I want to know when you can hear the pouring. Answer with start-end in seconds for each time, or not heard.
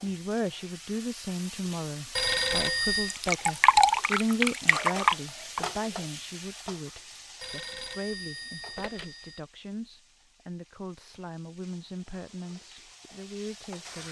3.1-5.6.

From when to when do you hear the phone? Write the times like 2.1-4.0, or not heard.
2.1-3.1, 7.4-9.4.